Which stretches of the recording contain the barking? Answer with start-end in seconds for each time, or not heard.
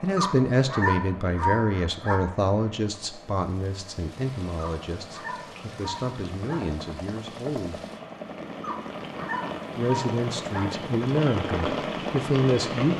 0.1-2.2, 4.5-6.6, 8.6-10.7.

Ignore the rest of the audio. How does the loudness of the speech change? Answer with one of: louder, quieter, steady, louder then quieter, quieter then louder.
quieter then louder.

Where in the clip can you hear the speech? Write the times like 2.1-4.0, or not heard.
0.0-7.8, 9.8-12.9.